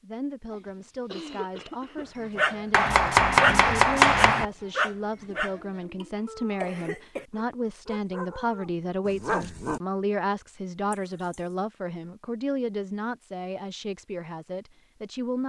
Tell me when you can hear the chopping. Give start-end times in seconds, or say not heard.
2.7-4.5.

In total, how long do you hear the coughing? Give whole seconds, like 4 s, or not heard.
4 s.